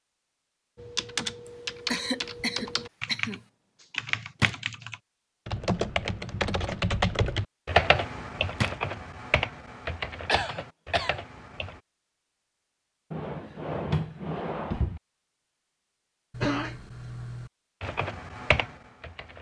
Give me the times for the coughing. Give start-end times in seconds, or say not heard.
1.9-3.4, 10.2-11.2, 16.3-17.5.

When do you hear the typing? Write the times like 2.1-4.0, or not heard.
0.8-11.8, 17.8-19.3.